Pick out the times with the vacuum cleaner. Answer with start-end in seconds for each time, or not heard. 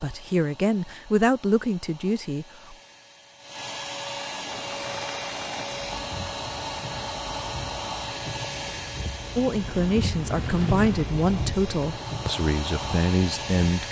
0.0-13.8.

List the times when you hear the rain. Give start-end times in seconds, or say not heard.
4.5-13.6.